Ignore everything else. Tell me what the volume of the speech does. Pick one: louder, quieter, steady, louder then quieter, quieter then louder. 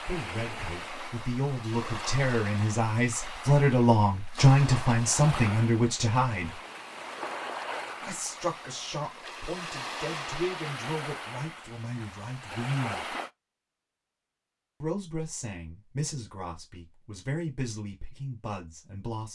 louder then quieter.